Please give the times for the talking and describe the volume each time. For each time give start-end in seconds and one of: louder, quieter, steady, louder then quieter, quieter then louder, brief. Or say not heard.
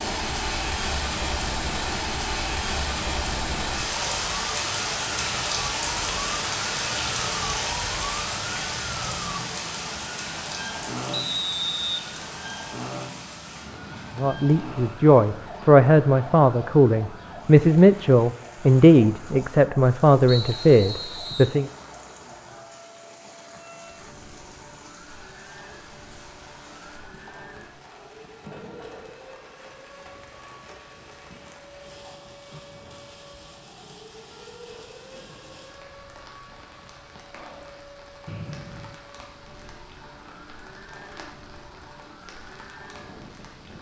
14.2-21.7 steady.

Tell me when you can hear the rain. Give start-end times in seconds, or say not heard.
0.0-43.7.